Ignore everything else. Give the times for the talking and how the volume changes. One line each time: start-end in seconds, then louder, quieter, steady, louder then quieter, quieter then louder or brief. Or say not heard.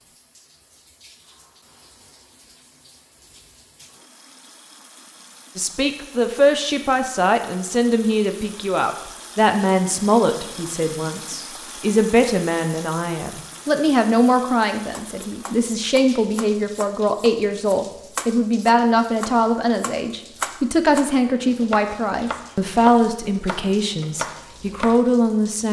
5.5-25.6 steady.